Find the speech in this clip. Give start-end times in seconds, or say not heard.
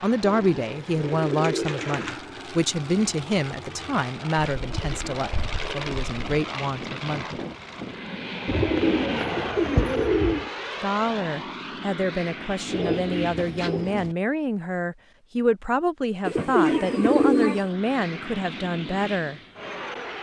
0.0-7.4, 10.8-19.4.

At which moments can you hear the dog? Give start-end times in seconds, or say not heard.
not heard.